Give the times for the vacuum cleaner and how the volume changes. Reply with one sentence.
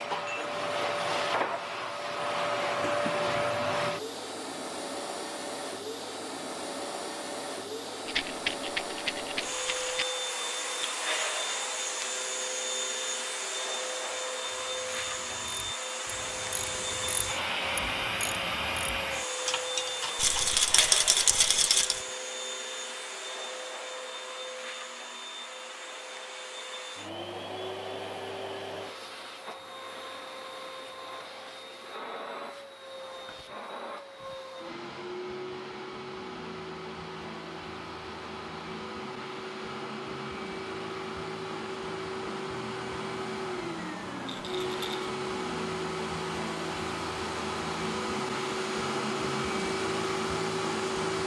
The vacuum cleaner can be heard from 0.0 to 51.2 s, getting quieter then louder.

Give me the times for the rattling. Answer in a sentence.
You can hear the rattling from 8.1 to 10.1 s, from 20.1 to 22.0 s and from 44.2 to 45.0 s.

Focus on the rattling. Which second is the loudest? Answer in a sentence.
The volume of the rattling peaks at 21 seconds.